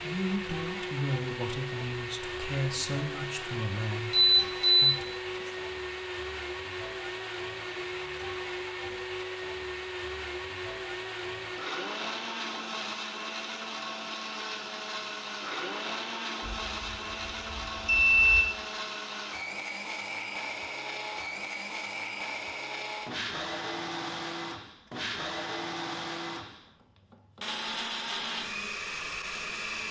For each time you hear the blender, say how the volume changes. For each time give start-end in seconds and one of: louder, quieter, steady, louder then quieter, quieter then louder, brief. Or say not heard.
0.0-29.8 steady.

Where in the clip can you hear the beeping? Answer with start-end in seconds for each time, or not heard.
4.1-4.8, 16.4-18.4.